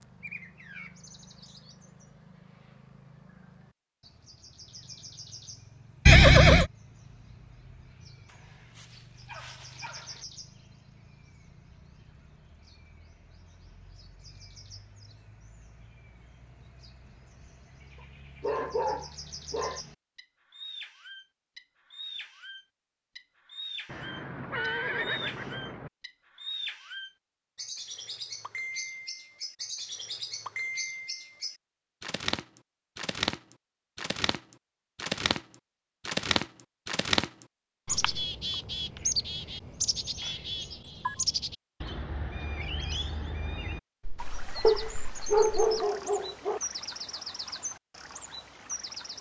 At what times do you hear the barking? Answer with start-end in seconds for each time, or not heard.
8.2-10.2, 18.4-19.8, 44.6-46.6.